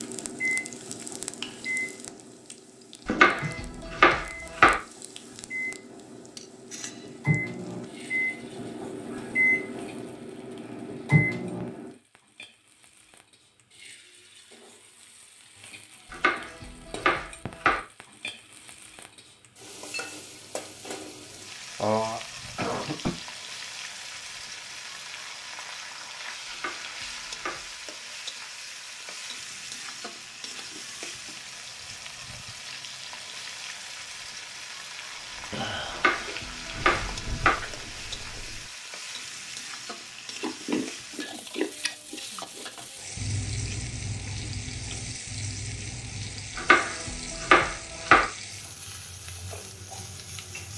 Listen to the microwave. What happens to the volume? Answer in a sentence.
The loudness of the microwave goes down, then up.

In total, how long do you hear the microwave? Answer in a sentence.
You can hear the microwave for 12 seconds altogether.